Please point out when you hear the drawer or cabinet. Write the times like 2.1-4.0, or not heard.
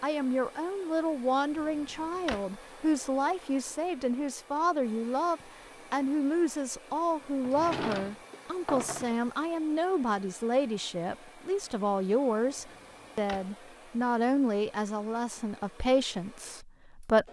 1.6-2.5, 7.4-9.2, 12.6-13.5.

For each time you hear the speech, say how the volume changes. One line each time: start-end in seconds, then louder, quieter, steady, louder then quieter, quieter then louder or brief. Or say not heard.
0.0-17.2 steady.